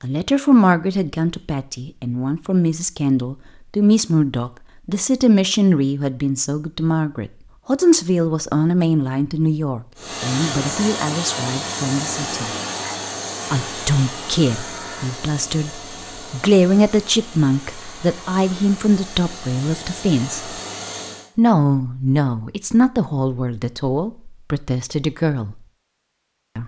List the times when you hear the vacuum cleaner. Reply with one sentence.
You can hear the vacuum cleaner from 9.9 to 21.3 s.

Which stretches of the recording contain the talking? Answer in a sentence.
The talking can be heard from 0.0 to 12.5 s, from 13.5 to 20.6 s and from 21.4 to 25.6 s.